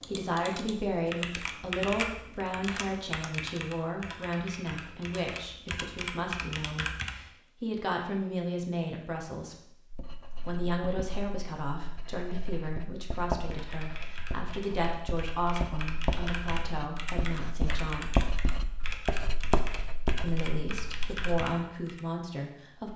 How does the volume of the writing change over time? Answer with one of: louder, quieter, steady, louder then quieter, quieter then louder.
louder.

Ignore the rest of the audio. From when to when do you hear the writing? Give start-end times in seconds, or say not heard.
9.9-21.4.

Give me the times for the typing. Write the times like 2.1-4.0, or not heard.
0.0-7.2, 13.4-22.0.